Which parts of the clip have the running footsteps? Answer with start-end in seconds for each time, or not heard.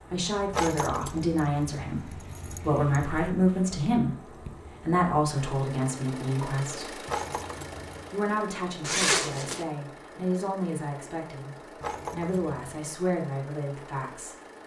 not heard.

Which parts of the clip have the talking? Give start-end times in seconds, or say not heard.
0.1-7.0, 8.1-14.3.